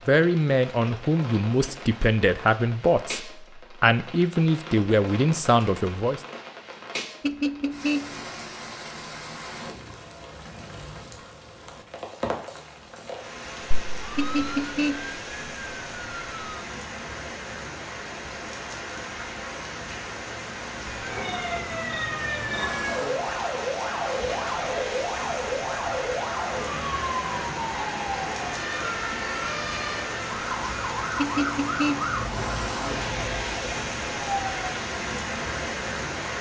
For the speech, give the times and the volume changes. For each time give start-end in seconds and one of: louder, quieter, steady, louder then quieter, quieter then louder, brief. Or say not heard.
0.1-6.2 steady.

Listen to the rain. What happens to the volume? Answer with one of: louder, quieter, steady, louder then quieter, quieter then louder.
louder.